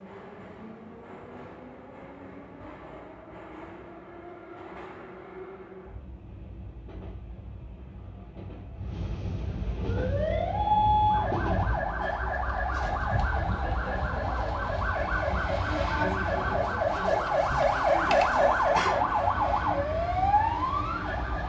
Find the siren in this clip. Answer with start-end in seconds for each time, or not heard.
9.8-21.4.